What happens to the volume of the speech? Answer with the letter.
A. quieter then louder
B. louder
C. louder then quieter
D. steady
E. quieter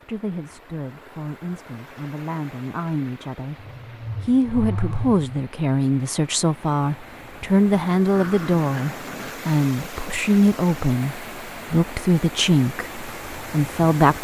B.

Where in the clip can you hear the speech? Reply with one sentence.
You can hear the speech from 0.1 to 3.5 s and from 4.2 to 14.2 s.